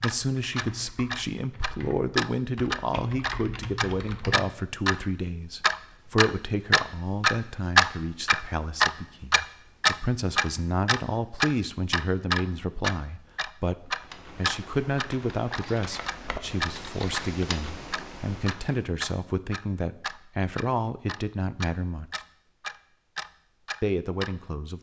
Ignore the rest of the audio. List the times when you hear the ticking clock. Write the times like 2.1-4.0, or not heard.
0.0-5.0, 5.6-17.3, 17.9-24.4.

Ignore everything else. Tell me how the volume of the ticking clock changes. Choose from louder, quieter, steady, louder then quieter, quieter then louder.
louder then quieter.